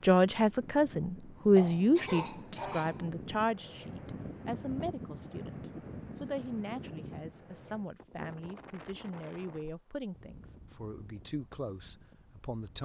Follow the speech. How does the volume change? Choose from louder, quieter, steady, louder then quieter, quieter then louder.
quieter.